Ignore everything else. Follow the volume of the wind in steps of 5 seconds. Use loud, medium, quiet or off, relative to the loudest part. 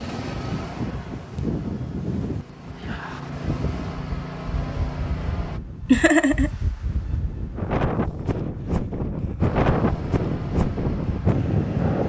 medium, loud, loud.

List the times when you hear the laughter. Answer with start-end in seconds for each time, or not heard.
5.9-6.5.